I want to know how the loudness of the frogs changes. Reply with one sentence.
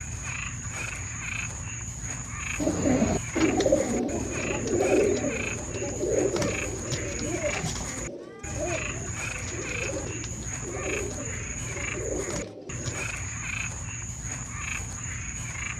The volume of the frogs stays about the same.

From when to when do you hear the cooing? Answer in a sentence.
You can hear the cooing from 2.6 to 13.1 s.